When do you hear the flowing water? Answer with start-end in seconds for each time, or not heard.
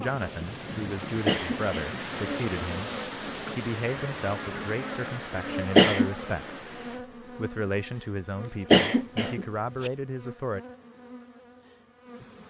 0.0-7.0.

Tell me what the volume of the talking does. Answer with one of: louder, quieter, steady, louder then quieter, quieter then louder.
steady.